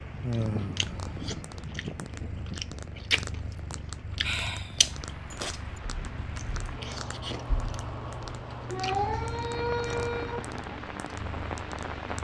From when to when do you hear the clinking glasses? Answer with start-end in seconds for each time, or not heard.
not heard.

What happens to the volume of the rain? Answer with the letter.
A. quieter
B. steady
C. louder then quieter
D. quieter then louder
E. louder
D.